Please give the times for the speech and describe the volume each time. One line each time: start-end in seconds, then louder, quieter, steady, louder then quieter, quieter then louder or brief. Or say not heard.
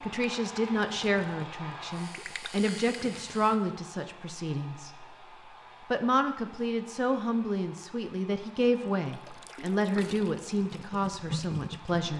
0.0-12.1 steady.